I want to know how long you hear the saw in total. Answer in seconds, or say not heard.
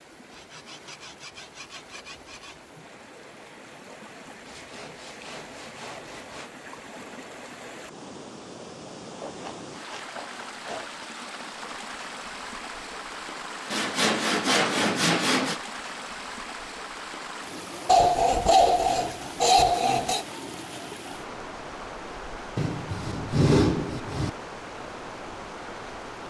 12 s.